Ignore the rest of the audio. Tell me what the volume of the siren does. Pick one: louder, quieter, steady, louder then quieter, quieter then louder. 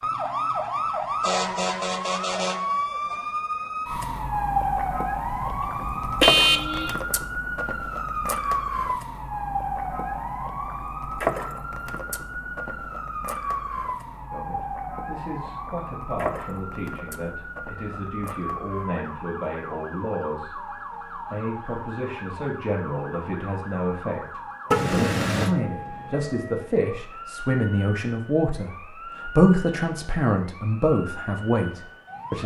quieter.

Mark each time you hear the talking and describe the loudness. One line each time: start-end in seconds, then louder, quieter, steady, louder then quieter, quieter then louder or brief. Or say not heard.
14.3-32.4 louder.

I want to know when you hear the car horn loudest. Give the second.
6 s.